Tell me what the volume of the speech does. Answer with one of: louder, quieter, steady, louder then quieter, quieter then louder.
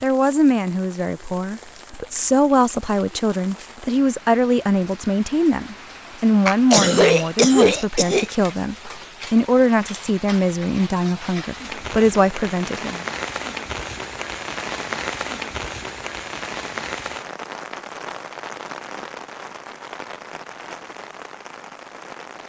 steady.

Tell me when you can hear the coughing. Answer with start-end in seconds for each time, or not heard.
6.5-8.2.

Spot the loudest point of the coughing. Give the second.
7 s.